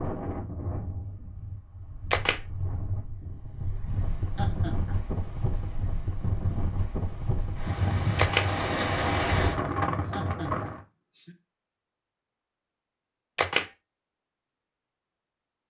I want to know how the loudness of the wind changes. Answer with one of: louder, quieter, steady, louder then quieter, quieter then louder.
louder.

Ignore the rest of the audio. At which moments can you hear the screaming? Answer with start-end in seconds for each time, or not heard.
not heard.